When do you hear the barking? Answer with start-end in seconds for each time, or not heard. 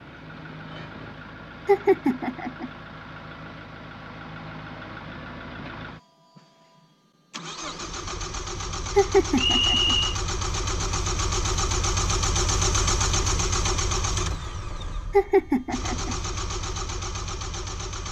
not heard.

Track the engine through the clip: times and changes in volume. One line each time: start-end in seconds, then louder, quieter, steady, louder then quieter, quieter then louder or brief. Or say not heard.
0.0-18.0 louder then quieter.